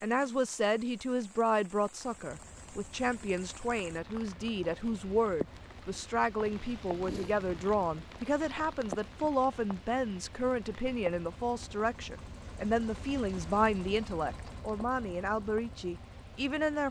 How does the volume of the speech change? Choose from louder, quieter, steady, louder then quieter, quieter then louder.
steady.